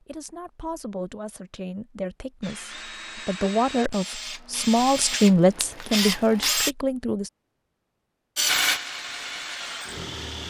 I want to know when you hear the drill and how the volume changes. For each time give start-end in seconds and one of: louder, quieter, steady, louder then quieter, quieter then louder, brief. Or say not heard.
2.4-6.8 louder
8.3-10.4 brief.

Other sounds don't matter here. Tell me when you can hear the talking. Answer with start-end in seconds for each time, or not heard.
0.0-7.3.